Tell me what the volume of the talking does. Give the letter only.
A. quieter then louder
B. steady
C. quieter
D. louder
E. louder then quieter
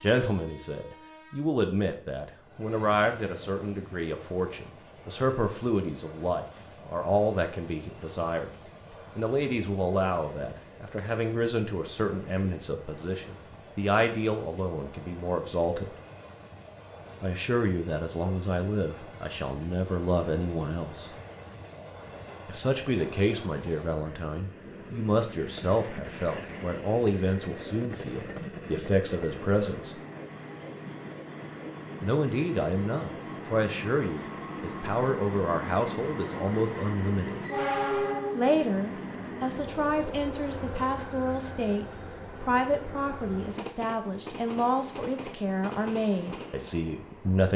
B.